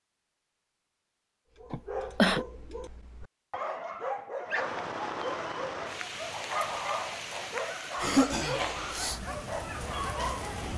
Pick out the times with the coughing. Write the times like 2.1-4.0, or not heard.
1.7-2.5, 8.0-9.2.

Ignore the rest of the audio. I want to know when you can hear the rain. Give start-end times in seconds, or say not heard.
4.5-10.7.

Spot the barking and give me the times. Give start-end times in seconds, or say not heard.
1.6-10.7.